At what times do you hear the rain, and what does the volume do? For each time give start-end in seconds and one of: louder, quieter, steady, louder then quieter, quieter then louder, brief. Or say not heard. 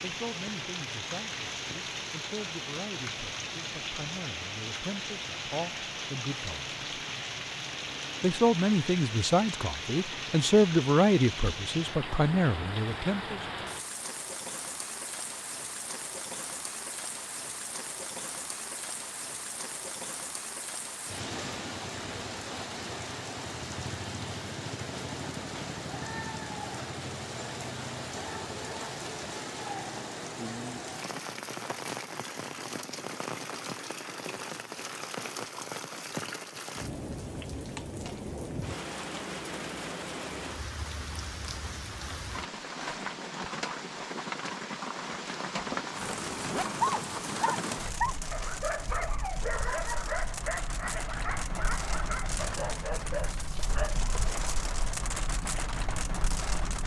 0.0-56.8 steady.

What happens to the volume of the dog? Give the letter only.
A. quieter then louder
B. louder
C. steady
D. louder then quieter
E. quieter
E.